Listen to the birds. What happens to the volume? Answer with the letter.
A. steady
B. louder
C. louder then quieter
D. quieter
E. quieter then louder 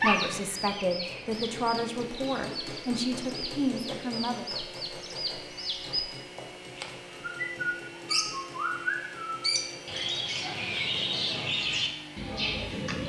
B.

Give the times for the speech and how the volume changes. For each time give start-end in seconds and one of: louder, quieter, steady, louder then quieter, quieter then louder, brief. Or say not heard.
0.0-4.5 steady.